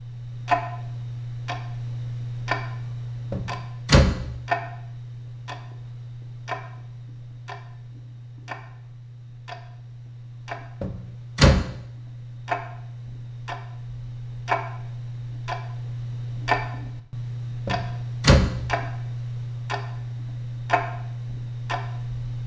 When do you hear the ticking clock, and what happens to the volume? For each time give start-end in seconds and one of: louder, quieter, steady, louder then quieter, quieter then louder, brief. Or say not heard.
0.0-22.4 quieter then louder.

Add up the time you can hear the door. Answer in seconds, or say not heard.
3 s.